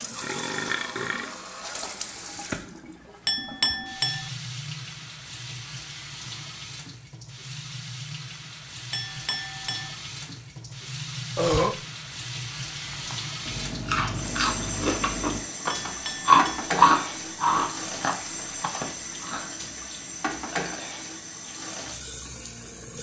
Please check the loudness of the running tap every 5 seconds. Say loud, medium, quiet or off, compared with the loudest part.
loud, medium, loud, loud, loud.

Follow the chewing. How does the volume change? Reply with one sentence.
The volume of the chewing goes up, then down.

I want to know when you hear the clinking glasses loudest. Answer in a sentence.
The loudest moment of the clinking glasses is at 4 seconds.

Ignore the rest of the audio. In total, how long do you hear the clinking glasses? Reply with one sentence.
The clinking glasses can be heard for 3 seconds in total.